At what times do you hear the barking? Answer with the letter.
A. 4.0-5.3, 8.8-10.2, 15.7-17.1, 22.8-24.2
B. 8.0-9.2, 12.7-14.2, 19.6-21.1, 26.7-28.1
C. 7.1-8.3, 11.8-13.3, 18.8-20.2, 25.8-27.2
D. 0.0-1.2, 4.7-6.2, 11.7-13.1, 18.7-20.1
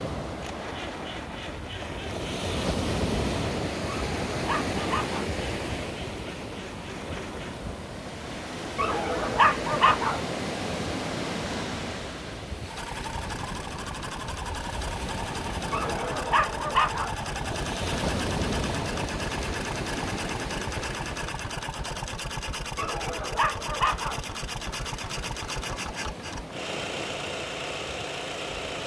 A.